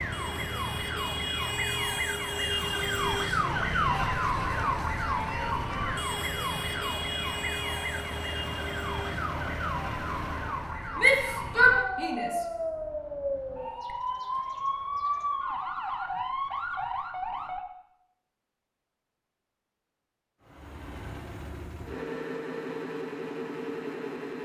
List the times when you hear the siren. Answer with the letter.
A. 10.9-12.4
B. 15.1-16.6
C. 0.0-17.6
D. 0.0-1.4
C.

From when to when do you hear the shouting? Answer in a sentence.
You can hear the shouting from 10.9 to 12.4 s.